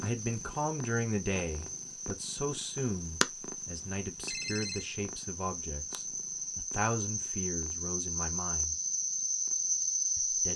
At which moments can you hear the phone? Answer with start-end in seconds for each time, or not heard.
4.2-4.9.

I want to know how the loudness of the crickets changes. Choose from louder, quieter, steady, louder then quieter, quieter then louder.
louder.